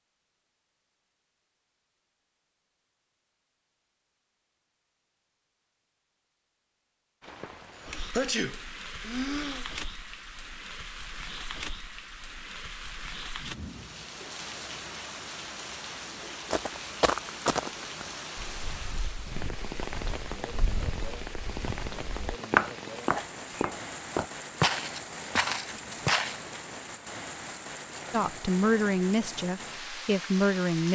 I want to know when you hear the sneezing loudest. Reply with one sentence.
The volume of the sneezing peaks at 8 seconds.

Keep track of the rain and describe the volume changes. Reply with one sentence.
The volume of the rain stays about the same.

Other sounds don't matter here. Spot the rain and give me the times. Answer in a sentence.
The rain can be heard from 7.2 to 30.9 s.